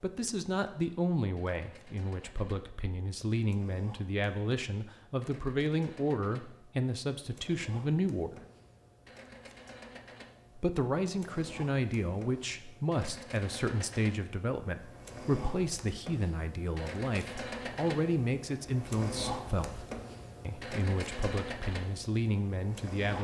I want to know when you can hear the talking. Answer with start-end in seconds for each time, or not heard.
0.0-8.4, 10.6-23.1.